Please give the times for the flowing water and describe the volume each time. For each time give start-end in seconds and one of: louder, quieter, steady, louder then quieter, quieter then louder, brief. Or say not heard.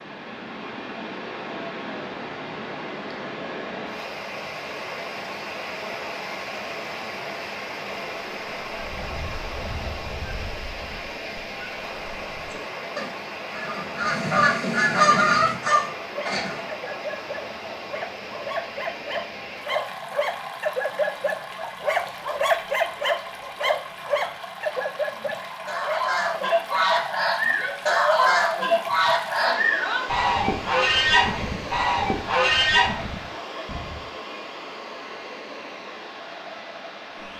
0.0-37.3 steady.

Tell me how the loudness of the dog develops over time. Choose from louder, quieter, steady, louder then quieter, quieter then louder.
louder then quieter.